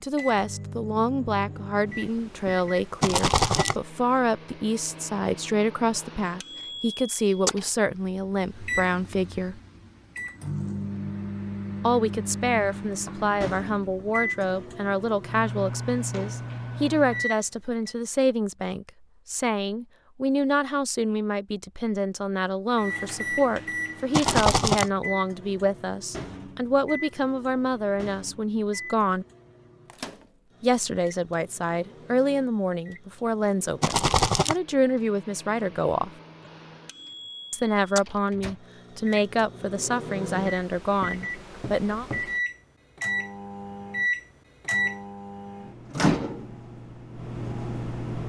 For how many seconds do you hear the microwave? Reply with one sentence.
The microwave can be heard for 43 seconds in total.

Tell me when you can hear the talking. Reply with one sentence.
The talking can be heard from 0.0 to 9.6 s, from 11.8 to 29.2 s, from 30.6 to 36.1 s and from 37.5 to 42.0 s.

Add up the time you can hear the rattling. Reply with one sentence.
You can hear the rattling for 2 seconds altogether.